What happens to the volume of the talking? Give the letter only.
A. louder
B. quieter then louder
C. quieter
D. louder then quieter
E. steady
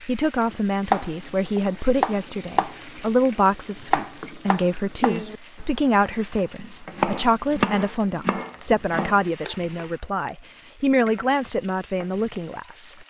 E.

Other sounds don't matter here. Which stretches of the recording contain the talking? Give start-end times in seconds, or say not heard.
0.0-12.9.